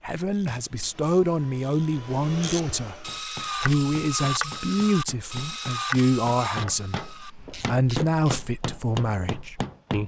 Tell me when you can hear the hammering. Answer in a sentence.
The hammering can be heard from 3.0 to 10.0 s.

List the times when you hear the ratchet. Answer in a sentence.
The ratchet can be heard from 0.3 to 8.5 s.